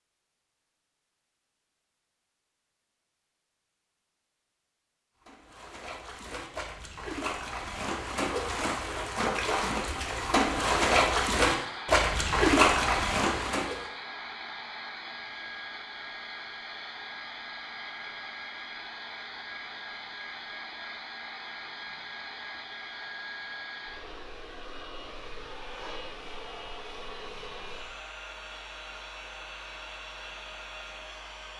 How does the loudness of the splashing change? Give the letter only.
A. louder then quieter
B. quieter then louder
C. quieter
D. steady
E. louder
E.